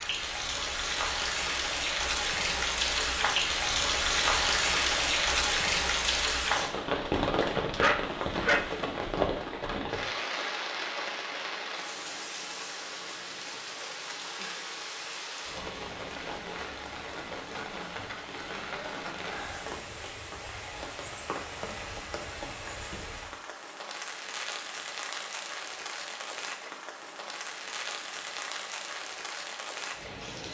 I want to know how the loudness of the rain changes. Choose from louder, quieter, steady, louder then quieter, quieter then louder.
quieter.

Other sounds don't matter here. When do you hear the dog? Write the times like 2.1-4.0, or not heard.
7.8-8.8.